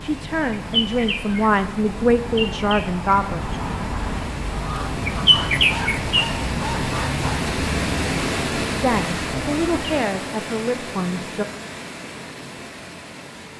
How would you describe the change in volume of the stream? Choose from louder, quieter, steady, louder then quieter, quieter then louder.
louder then quieter.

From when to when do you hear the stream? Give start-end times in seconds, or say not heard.
0.0-13.5.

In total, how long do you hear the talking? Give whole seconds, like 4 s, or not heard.
6 s.